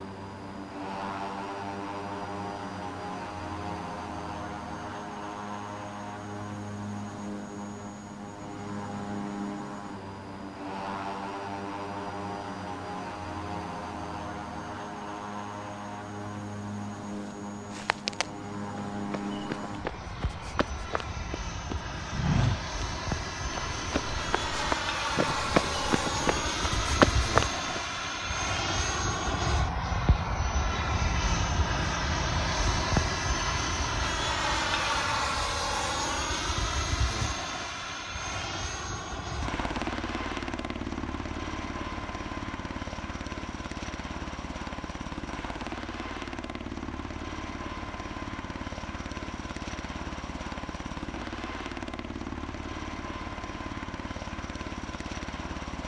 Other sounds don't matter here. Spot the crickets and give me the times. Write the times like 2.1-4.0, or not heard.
not heard.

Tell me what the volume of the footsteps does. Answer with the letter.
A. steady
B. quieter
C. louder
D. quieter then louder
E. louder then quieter
C.